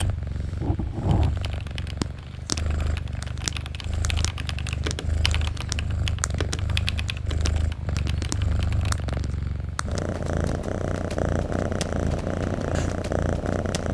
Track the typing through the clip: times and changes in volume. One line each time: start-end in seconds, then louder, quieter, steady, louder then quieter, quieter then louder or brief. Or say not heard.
1.0-9.2 louder then quieter.